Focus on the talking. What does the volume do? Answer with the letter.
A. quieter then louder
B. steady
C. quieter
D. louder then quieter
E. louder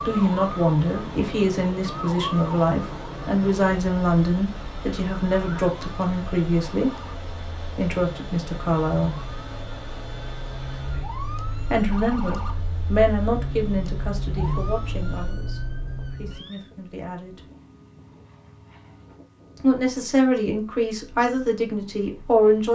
A.